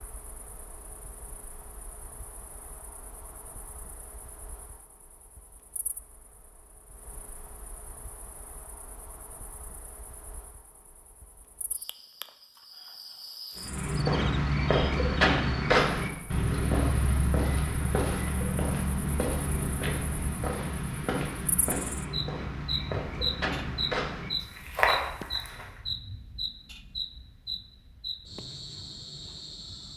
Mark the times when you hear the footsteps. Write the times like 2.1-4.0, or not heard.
13.6-25.8.